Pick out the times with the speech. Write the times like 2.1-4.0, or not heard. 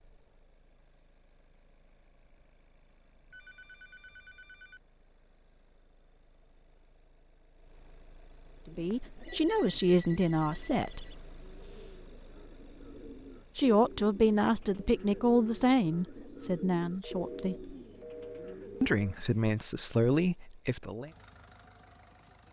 8.7-11.2, 13.6-17.8, 18.8-21.1.